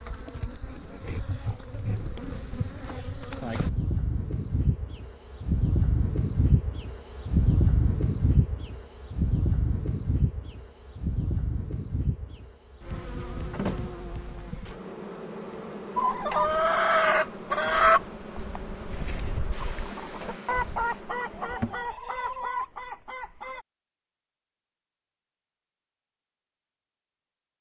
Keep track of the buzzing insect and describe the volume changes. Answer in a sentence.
The volume of the buzzing insect goes up, then down.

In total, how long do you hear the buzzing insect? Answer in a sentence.
The buzzing insect can be heard for 22 seconds in total.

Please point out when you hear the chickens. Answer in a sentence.
You can hear the chickens from 15.9 to 23.6 s.